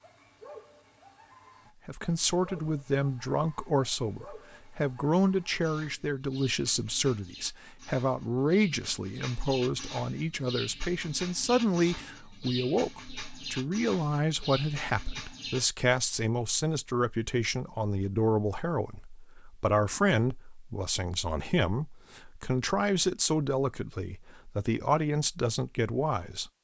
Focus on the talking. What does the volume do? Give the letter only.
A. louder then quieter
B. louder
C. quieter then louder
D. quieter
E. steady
E.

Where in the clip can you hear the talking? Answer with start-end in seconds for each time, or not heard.
1.9-26.5.